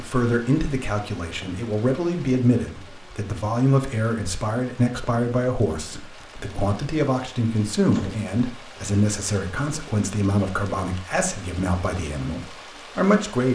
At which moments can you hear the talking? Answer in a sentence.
You can hear the talking from 0.0 to 13.5 s.